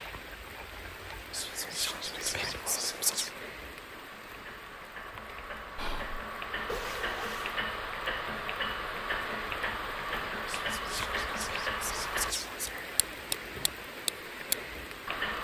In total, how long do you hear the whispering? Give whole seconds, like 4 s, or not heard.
5 s.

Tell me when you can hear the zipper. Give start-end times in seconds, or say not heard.
6.7-7.6.